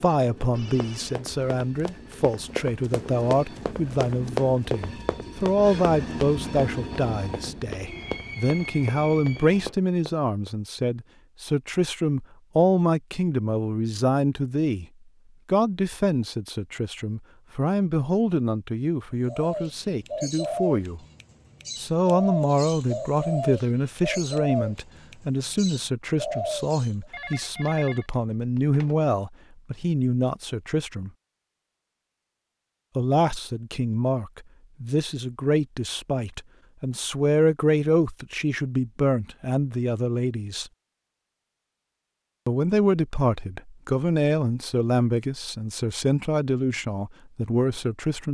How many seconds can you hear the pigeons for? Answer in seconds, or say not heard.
8 s.